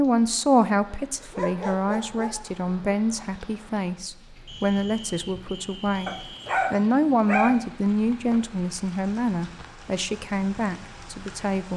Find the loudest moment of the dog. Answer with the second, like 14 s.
7 s.